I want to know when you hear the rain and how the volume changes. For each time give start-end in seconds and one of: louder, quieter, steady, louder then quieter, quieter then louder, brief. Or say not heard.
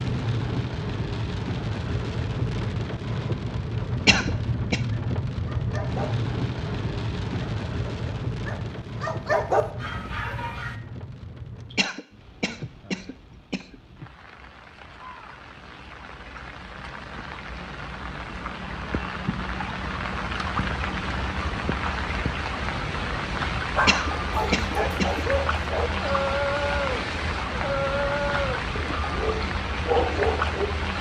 0.0-30.9 quieter then louder.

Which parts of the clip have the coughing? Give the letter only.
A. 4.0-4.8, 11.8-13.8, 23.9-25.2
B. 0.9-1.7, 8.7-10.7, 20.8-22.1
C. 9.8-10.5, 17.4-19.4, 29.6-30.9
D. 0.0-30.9
A.